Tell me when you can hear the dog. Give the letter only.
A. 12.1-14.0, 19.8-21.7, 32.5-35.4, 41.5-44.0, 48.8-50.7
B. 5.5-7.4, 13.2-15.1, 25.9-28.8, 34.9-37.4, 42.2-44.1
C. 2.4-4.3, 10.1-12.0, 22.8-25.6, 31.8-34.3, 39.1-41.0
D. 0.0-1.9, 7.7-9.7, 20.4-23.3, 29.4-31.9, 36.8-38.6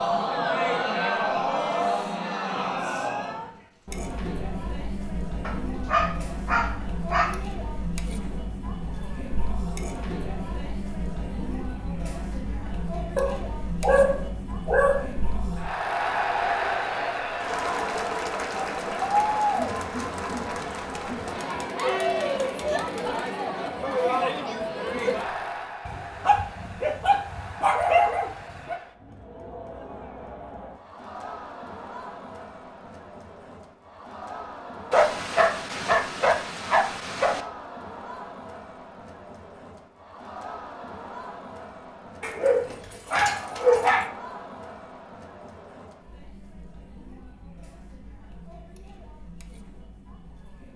B.